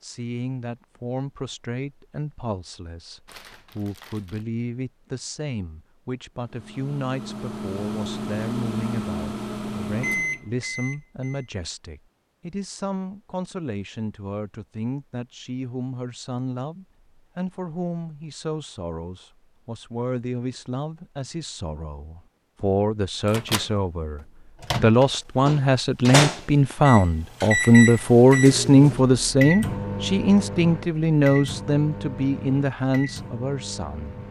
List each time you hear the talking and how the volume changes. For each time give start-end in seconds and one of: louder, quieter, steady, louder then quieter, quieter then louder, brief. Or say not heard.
0.0-34.2 louder.